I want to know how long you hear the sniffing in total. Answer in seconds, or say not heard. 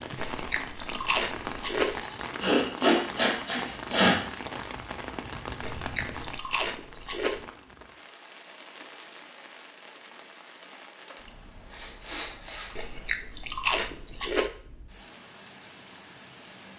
3 s.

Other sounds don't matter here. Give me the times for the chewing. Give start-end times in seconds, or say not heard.
0.1-2.0, 5.6-7.5, 12.8-14.5.